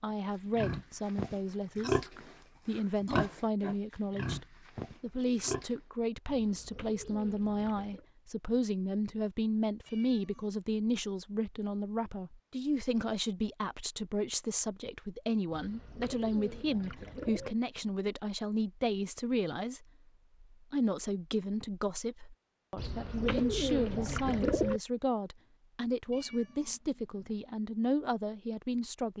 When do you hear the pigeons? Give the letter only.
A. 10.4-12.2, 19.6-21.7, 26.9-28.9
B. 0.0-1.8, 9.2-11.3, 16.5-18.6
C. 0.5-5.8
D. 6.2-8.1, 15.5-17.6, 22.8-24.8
D.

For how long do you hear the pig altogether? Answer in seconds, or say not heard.
5 s.